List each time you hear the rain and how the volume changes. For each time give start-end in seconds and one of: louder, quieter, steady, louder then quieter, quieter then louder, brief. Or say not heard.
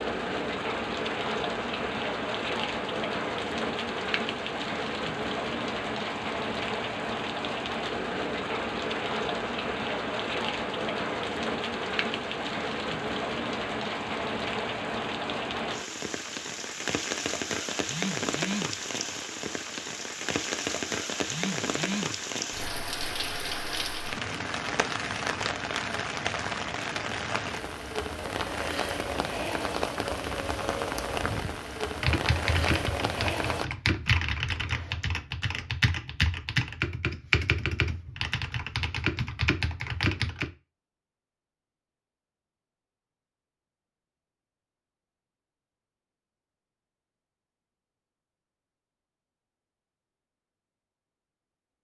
0.0-33.6 steady.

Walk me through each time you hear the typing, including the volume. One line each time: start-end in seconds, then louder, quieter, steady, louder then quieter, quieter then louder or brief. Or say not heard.
31.1-40.5 steady.